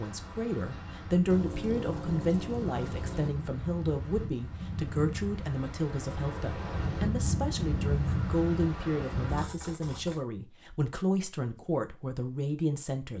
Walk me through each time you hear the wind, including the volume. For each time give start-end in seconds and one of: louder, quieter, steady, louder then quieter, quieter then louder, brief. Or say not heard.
0.0-9.5 louder.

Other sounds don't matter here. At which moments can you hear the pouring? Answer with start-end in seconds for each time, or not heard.
1.2-3.3, 9.2-10.2.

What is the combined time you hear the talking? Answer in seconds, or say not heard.
13 s.